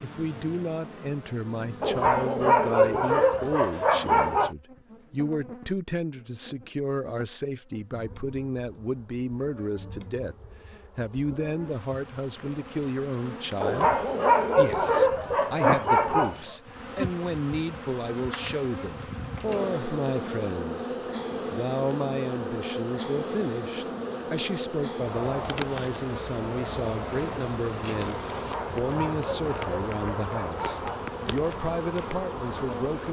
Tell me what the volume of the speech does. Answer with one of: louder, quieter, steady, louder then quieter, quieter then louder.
steady.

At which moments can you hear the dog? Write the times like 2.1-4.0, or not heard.
1.8-4.5, 13.6-16.4, 28.3-31.1.